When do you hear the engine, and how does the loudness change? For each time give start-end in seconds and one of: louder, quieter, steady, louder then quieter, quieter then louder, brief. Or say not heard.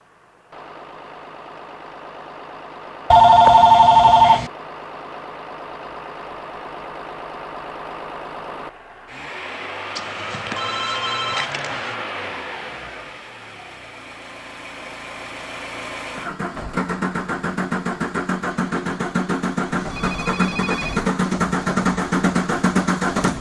0.0-23.3 louder.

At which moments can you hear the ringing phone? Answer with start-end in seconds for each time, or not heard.
3.1-4.5, 9.9-11.9, 19.8-21.1.